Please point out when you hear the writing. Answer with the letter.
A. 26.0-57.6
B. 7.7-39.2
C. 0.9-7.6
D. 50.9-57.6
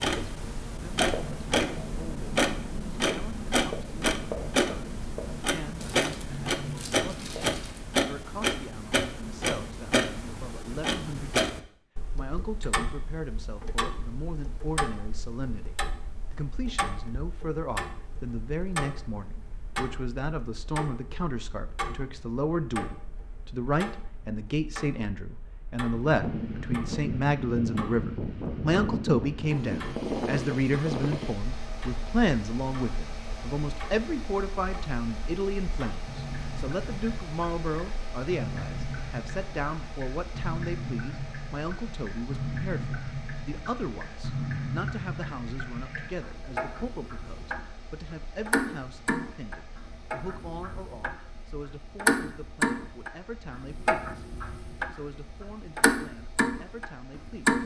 C.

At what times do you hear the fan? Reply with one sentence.
The fan can be heard from 26.0 to 57.6 s.